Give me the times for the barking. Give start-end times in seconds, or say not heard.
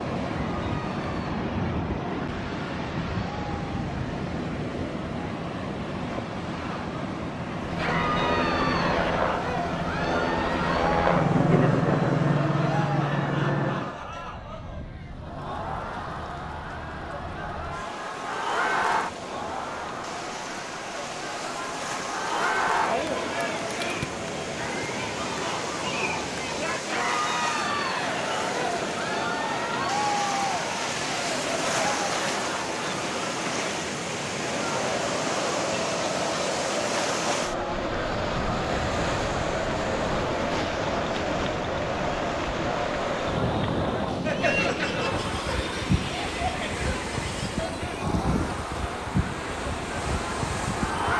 not heard.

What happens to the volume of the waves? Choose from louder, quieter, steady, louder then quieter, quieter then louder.
quieter then louder.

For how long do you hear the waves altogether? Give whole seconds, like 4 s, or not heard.
51 s.